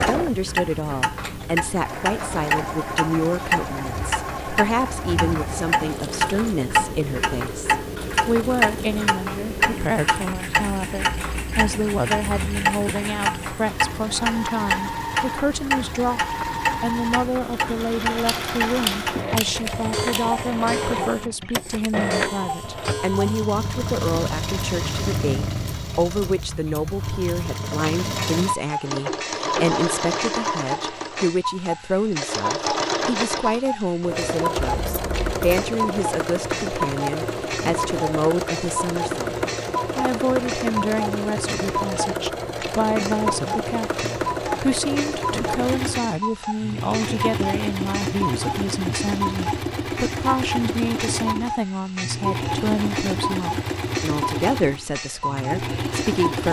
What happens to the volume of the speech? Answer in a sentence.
The loudness of the speech stays about the same.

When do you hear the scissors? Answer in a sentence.
The scissors can be heard from 18.2 to 20.3 s and from 34.6 to 35.5 s.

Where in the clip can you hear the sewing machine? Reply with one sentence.
The sewing machine can be heard from 0.0 to 56.4 s.